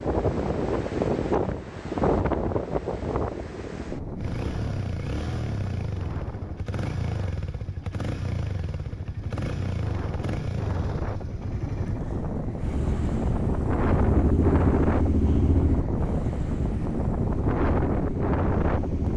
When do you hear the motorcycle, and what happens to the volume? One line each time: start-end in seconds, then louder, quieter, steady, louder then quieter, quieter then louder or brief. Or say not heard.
4.2-19.1 louder then quieter.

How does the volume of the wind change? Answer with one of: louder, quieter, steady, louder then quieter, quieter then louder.
quieter then louder.